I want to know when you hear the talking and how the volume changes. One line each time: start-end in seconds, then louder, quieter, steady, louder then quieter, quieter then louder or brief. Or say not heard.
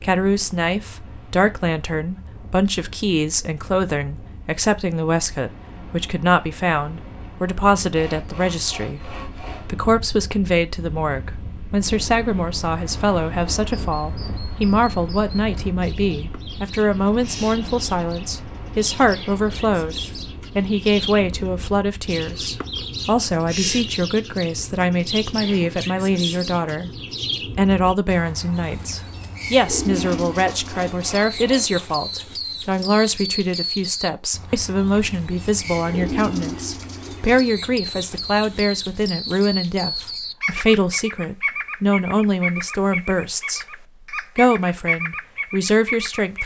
0.0-26.9 steady
27.6-46.4 steady.